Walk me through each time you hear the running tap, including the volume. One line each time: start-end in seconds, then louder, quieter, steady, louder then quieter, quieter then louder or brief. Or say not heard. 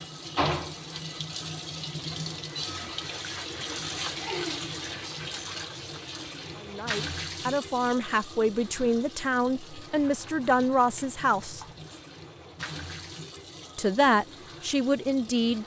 0.0-15.6 quieter.